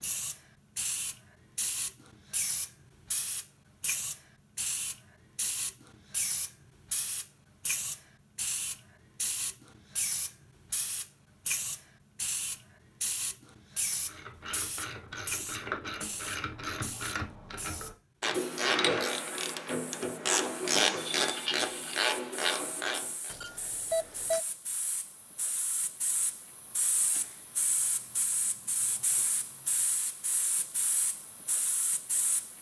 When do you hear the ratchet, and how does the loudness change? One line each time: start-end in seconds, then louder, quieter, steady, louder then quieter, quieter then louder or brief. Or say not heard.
13.9-23.3 louder.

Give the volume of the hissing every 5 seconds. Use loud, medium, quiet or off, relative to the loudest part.
loud, loud, loud, medium, medium, loud, loud.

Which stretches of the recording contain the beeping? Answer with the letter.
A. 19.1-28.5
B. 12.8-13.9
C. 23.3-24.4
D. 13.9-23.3
C.